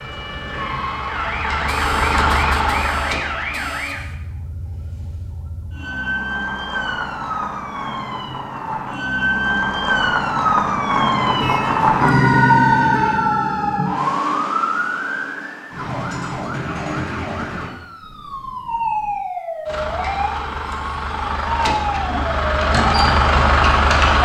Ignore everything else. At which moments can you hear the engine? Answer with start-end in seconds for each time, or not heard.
0.0-3.9, 19.6-24.2.